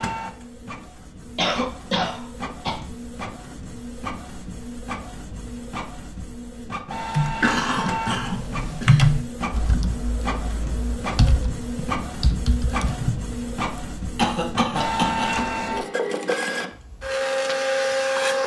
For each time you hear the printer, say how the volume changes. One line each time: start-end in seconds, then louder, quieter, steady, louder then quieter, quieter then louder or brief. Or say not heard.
0.0-18.4 louder.